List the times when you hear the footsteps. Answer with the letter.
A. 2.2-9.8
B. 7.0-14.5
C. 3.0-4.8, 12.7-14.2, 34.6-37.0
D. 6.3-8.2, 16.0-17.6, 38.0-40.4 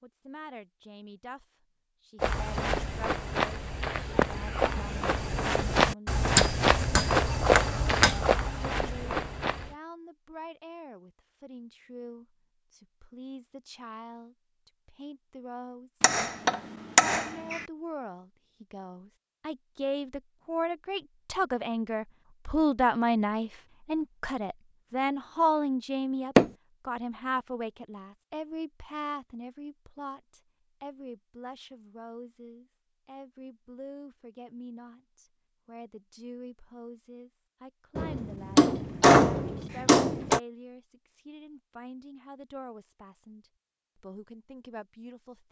A.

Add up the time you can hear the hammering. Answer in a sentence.
The hammering can be heard for 6 seconds in total.